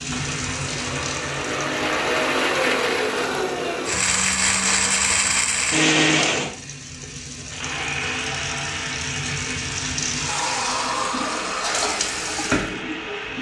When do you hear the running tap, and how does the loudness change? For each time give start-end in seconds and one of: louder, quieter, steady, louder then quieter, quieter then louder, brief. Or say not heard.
0.0-13.3 quieter then louder.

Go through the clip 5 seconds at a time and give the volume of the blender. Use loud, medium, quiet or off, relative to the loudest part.
loud, loud, medium.